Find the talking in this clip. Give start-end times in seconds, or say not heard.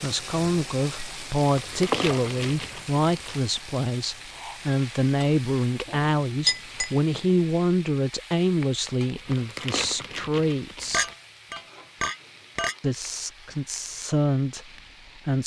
0.0-11.1, 12.8-15.4.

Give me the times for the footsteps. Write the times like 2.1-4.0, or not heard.
not heard.